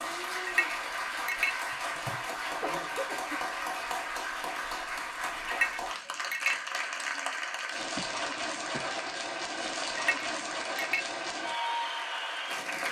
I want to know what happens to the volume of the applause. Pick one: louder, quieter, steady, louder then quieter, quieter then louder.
steady.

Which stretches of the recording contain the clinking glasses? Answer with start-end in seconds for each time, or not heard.
0.5-1.6, 5.5-6.5, 9.9-11.1.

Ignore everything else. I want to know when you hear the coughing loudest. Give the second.
3 s.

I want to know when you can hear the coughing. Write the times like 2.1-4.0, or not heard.
1.7-3.4, 8.0-8.9.